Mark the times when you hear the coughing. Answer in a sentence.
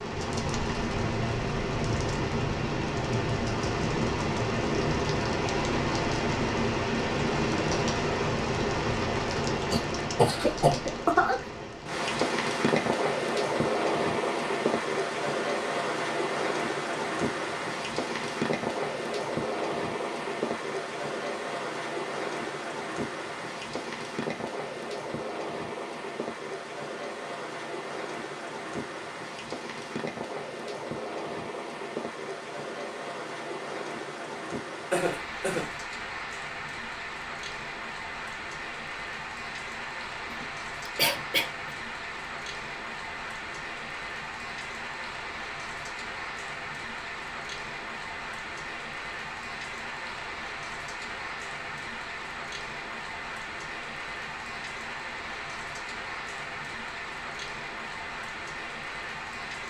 You can hear the coughing from 9.7 to 11.4 s, from 34.9 to 35.7 s and from 40.3 to 41.5 s.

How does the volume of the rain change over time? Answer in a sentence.
The loudness of the rain goes down.